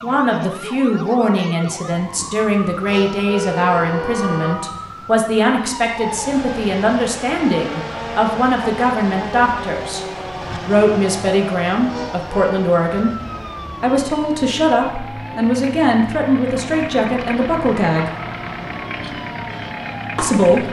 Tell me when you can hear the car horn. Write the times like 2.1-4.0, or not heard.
2.9-4.5, 11.8-12.6.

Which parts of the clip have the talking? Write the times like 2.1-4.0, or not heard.
0.0-13.2, 13.8-18.1, 20.1-20.6.